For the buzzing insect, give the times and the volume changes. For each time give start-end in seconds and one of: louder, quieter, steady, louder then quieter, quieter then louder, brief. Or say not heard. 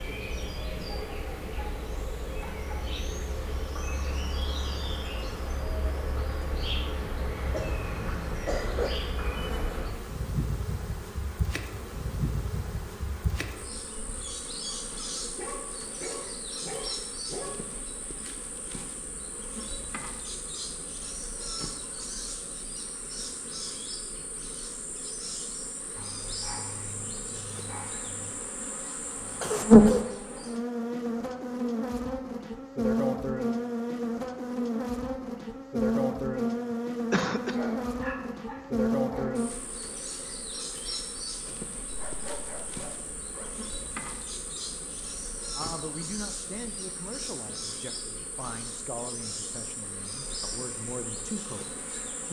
0.0-52.2 louder then quieter.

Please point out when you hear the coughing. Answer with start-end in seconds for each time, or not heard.
7.3-8.9, 29.2-30.1, 37.1-37.5.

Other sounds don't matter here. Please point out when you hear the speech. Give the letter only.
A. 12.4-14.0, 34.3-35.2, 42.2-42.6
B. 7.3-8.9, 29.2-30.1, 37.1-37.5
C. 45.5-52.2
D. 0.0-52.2
C.